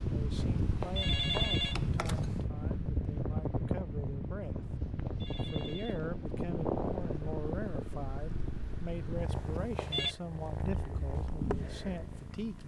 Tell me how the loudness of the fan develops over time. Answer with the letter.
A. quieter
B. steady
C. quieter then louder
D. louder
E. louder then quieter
A.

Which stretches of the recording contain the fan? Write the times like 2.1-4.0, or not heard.
0.0-9.7.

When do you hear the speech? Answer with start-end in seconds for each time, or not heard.
0.1-4.7, 5.5-12.6.